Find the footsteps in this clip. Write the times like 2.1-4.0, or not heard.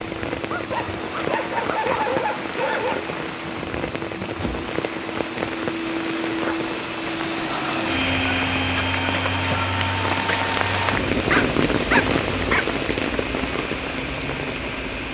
not heard.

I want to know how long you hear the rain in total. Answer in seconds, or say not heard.
15 s.